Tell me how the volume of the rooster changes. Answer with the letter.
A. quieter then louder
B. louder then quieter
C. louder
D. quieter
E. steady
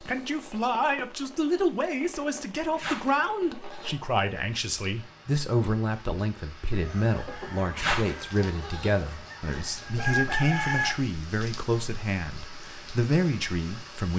A.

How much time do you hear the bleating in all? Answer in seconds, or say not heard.
4 s.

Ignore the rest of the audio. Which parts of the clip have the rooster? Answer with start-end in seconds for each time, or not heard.
6.7-10.9.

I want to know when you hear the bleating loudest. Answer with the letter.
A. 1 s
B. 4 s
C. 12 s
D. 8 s
D.